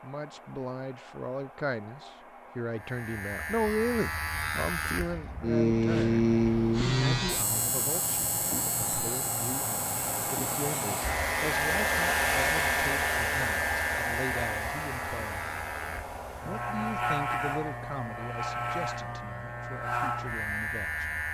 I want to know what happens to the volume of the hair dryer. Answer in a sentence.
The volume of the hair dryer goes up, then down.